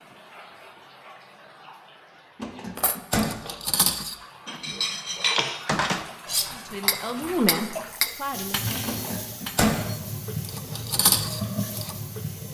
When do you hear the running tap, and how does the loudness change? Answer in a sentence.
You can hear the running tap from 0.0 to 12.4 s, getting louder.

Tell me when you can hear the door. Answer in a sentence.
You can hear the door from 2.4 to 3.4 s and from 8.8 to 9.8 s.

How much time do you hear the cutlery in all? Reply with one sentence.
You can hear the cutlery for 9 seconds altogether.